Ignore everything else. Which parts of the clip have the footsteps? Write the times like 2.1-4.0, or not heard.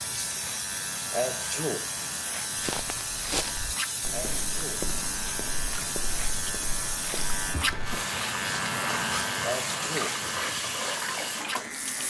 2.5-8.0.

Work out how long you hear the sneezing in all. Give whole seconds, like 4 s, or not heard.
2 s.